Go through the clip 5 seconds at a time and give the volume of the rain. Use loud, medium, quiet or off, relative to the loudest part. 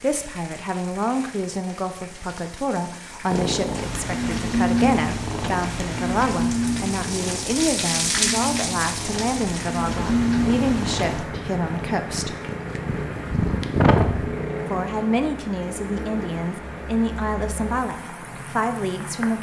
quiet, loud, loud, medium.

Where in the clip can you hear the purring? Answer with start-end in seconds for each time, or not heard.
3.3-14.3.